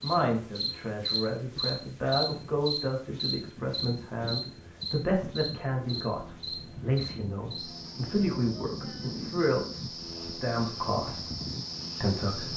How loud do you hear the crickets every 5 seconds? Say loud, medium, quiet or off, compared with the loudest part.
loud, medium, medium.